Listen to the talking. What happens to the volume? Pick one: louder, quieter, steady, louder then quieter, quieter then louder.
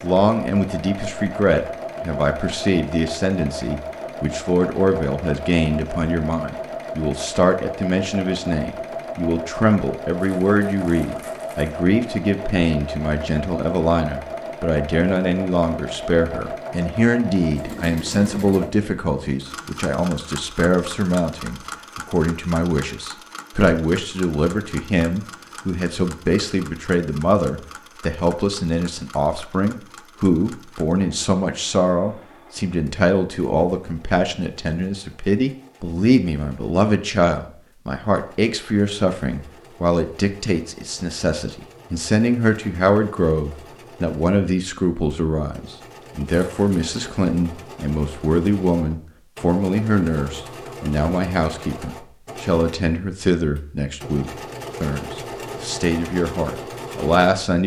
steady.